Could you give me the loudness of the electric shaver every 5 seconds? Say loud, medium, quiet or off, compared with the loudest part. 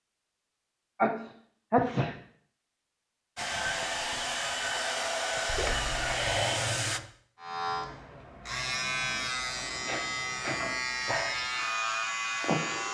off, loud, loud.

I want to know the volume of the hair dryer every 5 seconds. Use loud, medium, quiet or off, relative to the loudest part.
loud, loud, off.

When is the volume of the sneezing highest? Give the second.
2 s.